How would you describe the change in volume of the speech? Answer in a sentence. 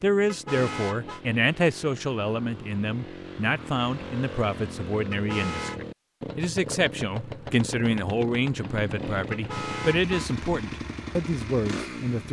The loudness of the speech stays about the same.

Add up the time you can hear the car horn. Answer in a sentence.
You can hear the car horn for 3 seconds altogether.